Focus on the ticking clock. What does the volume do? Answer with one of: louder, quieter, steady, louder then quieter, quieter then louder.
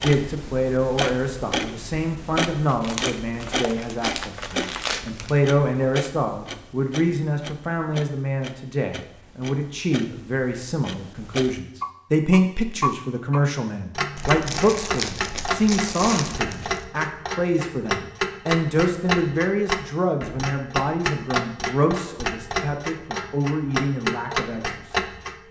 quieter then louder.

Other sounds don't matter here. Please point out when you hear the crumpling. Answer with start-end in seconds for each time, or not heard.
2.6-5.4, 14.2-16.9.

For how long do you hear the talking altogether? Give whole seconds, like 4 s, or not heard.
25 s.